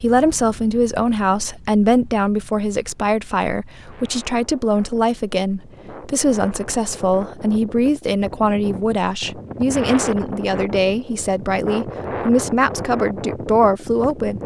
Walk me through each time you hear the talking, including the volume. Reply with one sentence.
You can hear the talking from 0.0 to 14.4 s, at a steady volume.